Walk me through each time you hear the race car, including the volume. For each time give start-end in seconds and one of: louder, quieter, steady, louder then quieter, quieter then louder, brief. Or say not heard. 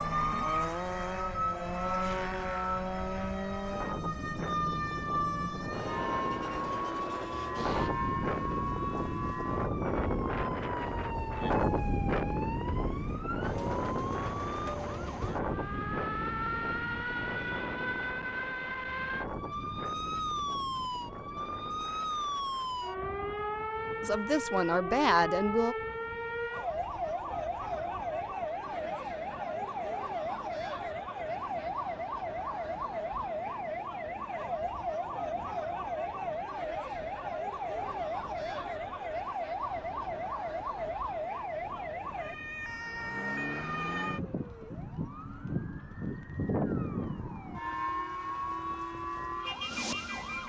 0.0-7.9 quieter.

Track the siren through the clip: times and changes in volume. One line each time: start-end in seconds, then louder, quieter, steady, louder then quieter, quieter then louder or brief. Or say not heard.
0.0-50.4 steady.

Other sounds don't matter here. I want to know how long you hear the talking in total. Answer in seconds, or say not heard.
2 s.